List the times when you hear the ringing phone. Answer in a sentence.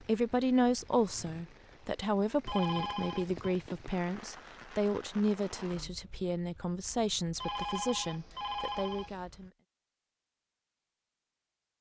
The ringing phone can be heard from 2.5 to 3.5 s and from 7.3 to 9.2 s.